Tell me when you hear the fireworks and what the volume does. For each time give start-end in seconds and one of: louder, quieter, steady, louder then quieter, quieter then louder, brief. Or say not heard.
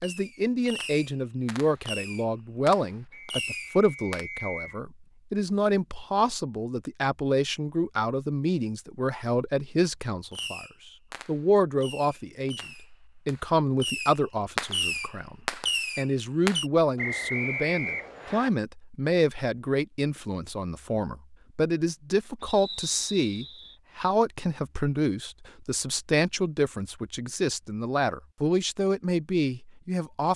0.0-4.2 quieter then louder
10.3-16.6 louder.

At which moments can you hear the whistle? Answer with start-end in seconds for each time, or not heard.
3.1-4.8, 16.9-18.5, 22.4-23.8.